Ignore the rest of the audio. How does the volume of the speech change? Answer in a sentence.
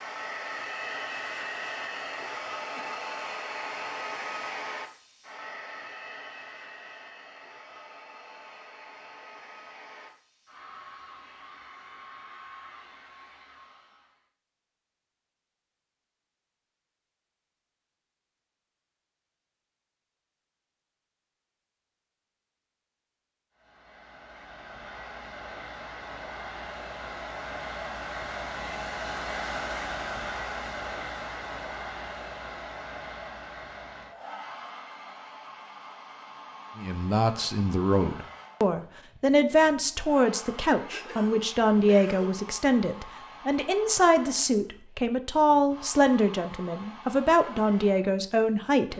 The volume of the speech stays about the same.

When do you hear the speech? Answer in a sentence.
The speech can be heard from 36.8 to 48.9 s.